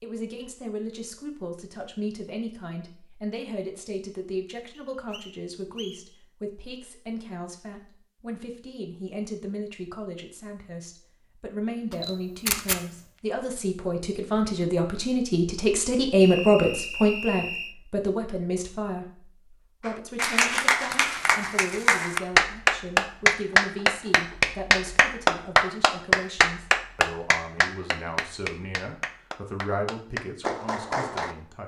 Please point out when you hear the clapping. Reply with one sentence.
You can hear the clapping from 19.9 to 31.4 s.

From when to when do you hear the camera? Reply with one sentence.
The camera can be heard from 11.9 to 12.8 s.